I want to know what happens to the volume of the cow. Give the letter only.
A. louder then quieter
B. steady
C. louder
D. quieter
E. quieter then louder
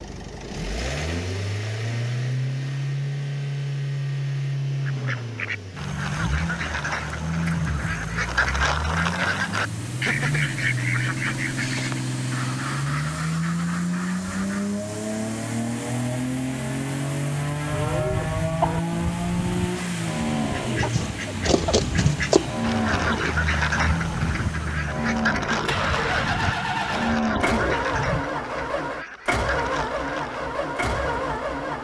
B.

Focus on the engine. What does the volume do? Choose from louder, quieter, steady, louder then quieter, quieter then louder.
steady.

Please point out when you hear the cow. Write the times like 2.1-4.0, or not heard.
17.6-28.2.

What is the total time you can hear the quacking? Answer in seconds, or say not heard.
20 s.